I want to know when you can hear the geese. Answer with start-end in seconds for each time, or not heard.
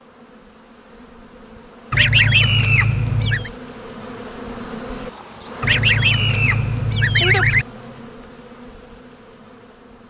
1.9-3.5, 5.6-7.7.